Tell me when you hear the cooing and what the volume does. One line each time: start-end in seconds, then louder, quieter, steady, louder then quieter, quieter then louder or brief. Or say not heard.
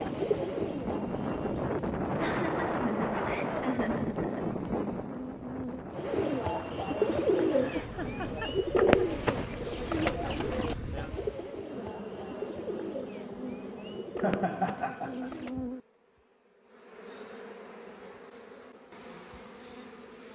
0.0-1.9 brief
5.9-15.7 quieter.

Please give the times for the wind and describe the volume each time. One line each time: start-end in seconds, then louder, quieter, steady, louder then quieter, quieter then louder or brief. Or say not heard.
0.0-11.1 quieter.